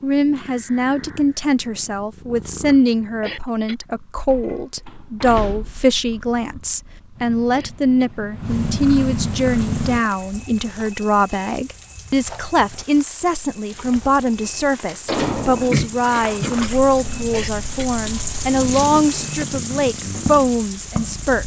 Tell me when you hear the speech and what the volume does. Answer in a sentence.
You can hear the speech from 0.0 to 21.4 s, at a steady volume.